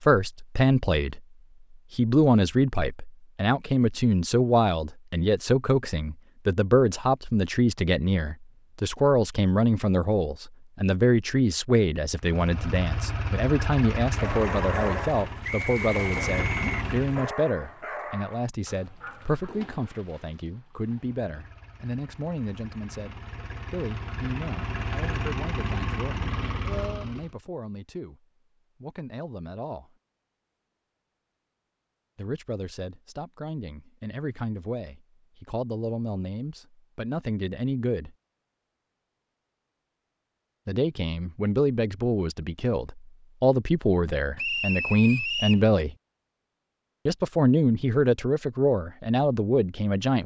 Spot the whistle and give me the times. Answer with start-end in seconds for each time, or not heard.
15.4-16.9, 44.4-45.6.